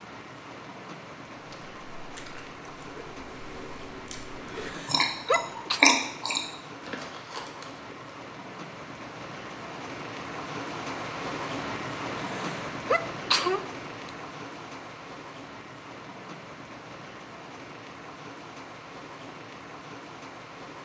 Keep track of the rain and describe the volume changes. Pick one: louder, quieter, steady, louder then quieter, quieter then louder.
louder then quieter.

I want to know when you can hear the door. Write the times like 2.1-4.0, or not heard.
not heard.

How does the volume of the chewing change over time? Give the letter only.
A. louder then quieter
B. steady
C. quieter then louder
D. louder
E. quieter
A.